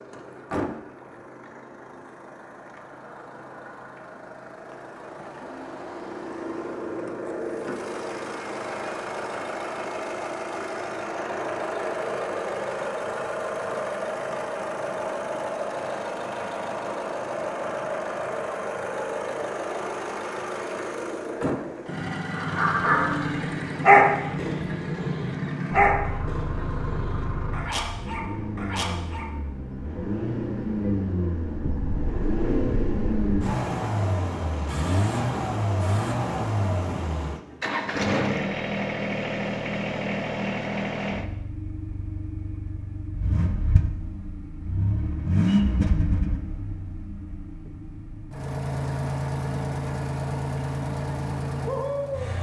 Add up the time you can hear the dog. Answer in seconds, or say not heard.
7 s.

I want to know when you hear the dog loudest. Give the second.
24 s.